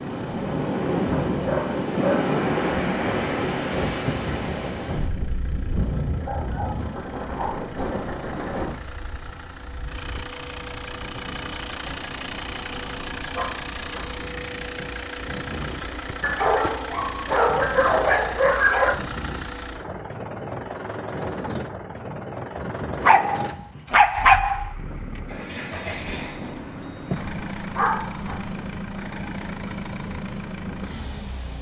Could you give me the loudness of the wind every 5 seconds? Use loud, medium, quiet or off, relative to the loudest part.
loud, medium, quiet, quiet, quiet, quiet, quiet.